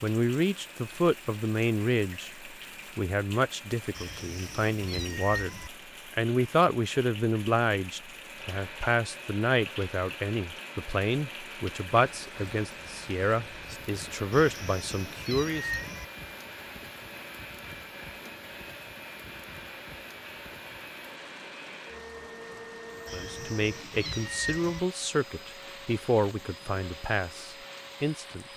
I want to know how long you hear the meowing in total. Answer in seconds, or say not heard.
5 s.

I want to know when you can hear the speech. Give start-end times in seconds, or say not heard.
0.0-15.7, 23.1-28.4.